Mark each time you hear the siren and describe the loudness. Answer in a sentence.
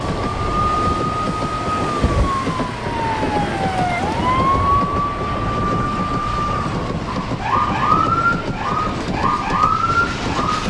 You can hear the siren from 0.0 to 10.6 s, at a steady volume.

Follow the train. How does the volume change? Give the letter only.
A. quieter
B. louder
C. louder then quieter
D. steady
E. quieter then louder
D.